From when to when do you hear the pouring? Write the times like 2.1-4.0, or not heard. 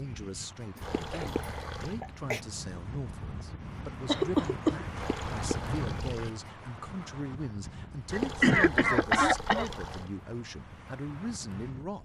0.8-1.9, 5.0-6.3, 8.1-10.1.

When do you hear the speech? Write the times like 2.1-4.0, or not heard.
0.0-12.0.